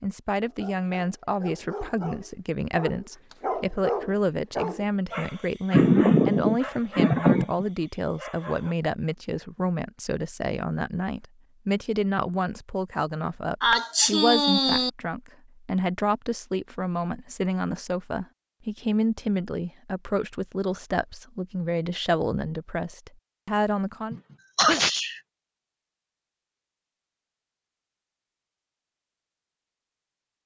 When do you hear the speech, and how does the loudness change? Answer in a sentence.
The speech can be heard from 0.0 to 24.1 s, at a steady volume.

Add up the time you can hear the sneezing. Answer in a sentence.
You can hear the sneezing for 4 seconds altogether.